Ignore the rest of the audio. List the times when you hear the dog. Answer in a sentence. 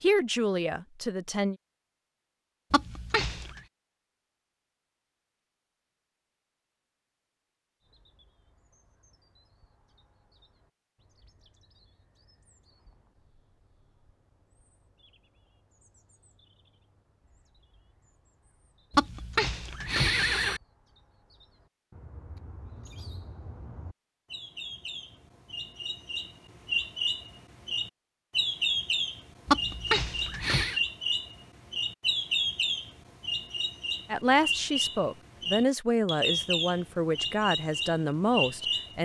You can't hear the dog here.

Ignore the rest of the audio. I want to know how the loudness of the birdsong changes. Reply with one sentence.
The loudness of the birdsong goes up.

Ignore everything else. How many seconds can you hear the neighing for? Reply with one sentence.
You can hear the neighing for 4 seconds altogether.